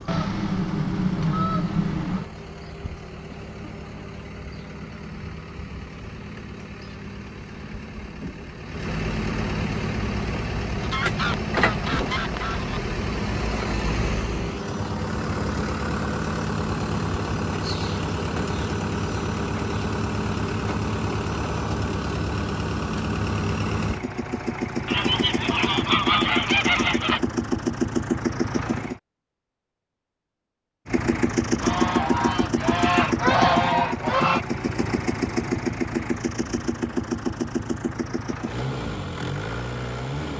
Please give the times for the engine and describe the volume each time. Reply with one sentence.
You can hear the engine from 0.0 to 29.0 s, getting louder; and from 30.9 to 40.3 s, getting quieter.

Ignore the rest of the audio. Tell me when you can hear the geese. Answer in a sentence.
You can hear the geese from 0.1 to 2.3 s, from 10.8 to 12.8 s, from 24.9 to 27.2 s and from 31.6 to 34.5 s.